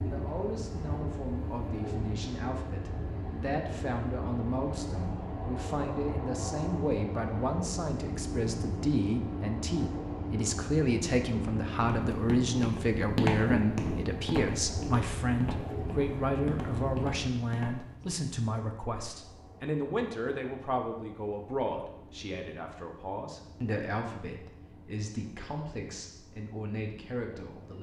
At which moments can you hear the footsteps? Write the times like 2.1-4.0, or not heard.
11.8-18.1.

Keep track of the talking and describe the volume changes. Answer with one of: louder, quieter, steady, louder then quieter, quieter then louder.
louder then quieter.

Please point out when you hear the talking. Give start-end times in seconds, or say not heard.
0.0-27.7.